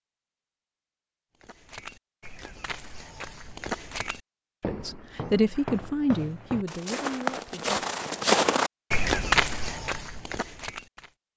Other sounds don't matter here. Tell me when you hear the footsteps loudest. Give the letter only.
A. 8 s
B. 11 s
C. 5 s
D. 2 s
A.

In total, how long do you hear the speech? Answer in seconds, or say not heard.
3 s.